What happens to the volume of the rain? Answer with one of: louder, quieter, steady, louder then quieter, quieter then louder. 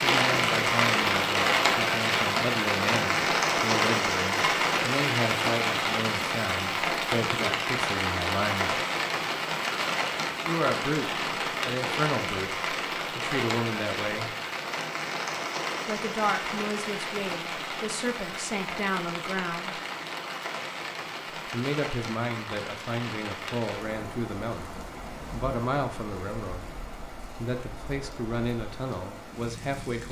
quieter.